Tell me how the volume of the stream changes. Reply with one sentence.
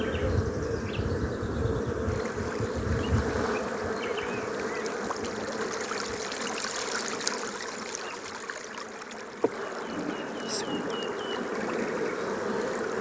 The loudness of the stream goes up, then down.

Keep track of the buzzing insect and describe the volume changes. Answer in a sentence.
The loudness of the buzzing insect goes down, then up.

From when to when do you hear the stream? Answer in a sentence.
The stream can be heard from 2.0 to 12.9 s.